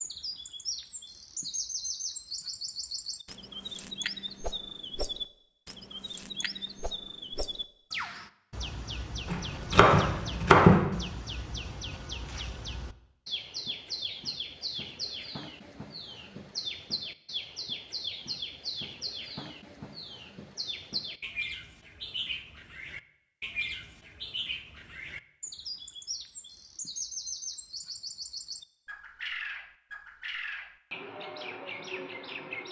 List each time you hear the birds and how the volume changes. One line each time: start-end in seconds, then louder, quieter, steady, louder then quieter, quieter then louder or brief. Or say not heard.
0.0-32.6 steady.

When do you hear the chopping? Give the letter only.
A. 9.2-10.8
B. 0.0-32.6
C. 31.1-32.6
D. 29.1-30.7
A.